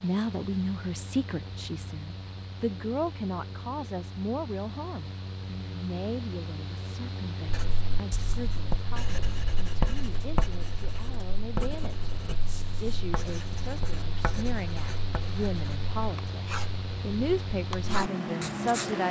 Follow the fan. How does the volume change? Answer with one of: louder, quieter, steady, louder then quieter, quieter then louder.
louder.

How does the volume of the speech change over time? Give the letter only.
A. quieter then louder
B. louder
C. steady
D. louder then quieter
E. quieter
A.